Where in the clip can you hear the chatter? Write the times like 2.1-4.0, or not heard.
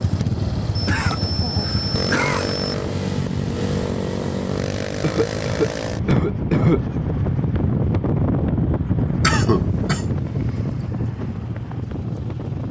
not heard.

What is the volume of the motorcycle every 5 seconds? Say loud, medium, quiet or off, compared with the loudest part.
loud, loud, medium.